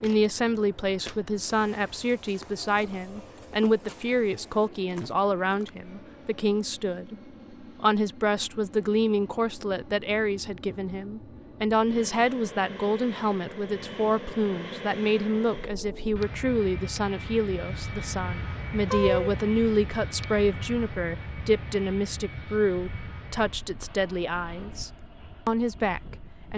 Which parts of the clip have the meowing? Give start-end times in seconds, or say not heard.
18.9-19.4.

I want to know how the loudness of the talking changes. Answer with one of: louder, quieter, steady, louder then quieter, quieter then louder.
steady.